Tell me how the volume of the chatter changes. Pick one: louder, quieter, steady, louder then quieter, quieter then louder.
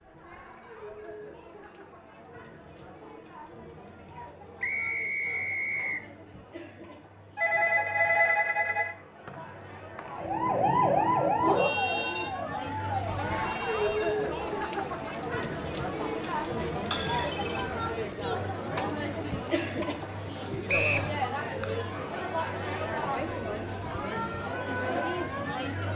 louder.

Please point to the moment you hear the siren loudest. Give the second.
11 s.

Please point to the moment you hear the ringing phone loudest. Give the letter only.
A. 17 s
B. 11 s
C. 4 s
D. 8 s
D.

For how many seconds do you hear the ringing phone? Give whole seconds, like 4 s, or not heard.
3 s.